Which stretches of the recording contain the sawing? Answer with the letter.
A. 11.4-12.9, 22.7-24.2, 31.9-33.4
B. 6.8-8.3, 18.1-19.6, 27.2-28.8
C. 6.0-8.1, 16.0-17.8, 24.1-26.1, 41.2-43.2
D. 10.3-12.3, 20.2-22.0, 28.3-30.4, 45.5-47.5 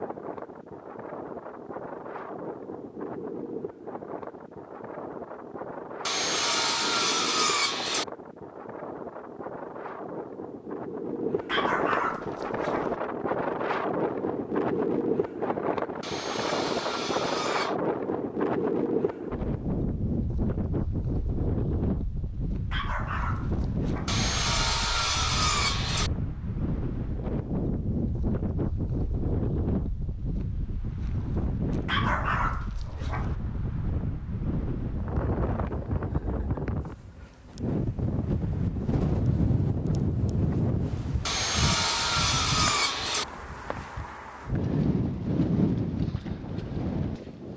C.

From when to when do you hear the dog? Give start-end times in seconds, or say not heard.
11.4-12.9, 22.7-24.2, 31.9-33.4.